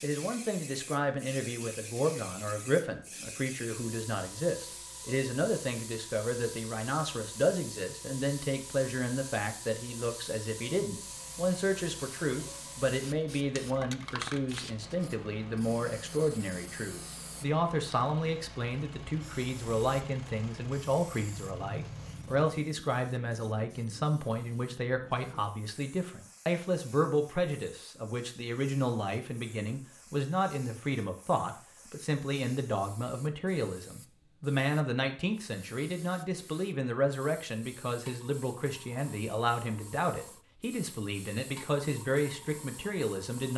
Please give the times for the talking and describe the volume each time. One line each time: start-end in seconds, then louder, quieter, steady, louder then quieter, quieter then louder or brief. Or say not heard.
0.0-43.5 steady.